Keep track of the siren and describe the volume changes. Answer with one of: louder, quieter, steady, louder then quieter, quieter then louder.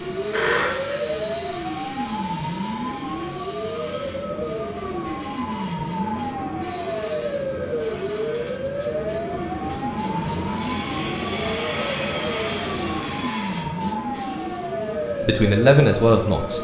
steady.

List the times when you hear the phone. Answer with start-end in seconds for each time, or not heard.
0.3-0.9.